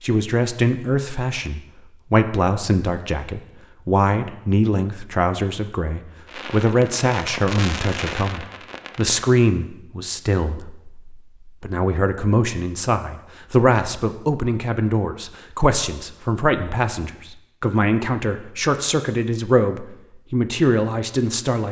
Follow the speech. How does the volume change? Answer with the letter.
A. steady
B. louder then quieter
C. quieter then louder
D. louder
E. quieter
A.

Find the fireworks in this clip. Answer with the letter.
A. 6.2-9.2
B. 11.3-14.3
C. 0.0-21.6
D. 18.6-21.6
A.